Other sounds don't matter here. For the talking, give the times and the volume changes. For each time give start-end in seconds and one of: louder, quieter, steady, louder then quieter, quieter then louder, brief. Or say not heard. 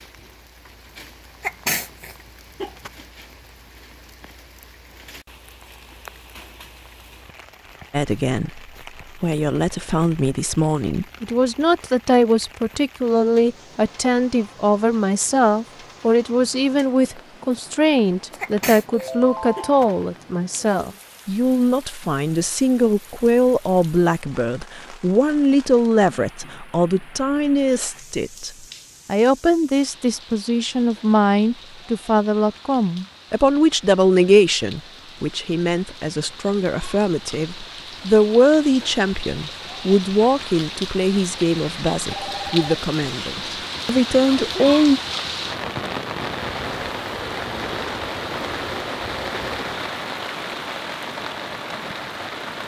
7.9-45.0 steady.